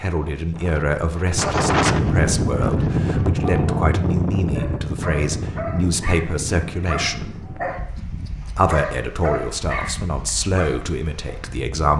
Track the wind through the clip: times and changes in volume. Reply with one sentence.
The wind can be heard from 0.0 to 11.7 s, getting quieter.